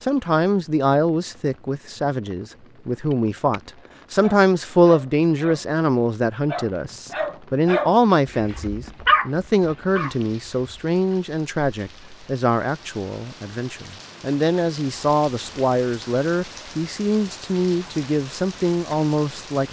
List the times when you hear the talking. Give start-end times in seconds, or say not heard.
0.0-19.6.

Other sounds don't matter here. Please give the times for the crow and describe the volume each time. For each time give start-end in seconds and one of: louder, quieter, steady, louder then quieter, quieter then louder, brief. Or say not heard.
not heard.